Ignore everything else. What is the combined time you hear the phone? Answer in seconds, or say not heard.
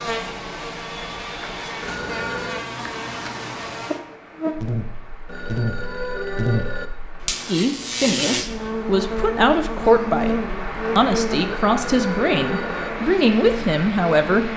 4 s.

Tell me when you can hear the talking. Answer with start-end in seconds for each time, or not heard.
7.5-10.3, 10.9-14.5.